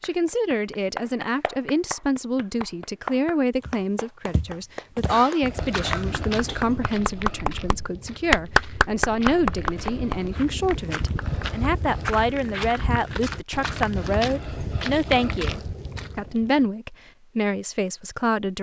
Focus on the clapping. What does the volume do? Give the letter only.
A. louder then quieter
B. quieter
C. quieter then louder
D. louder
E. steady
A.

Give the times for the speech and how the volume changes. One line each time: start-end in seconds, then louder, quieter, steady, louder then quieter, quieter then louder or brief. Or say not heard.
0.0-18.5 steady.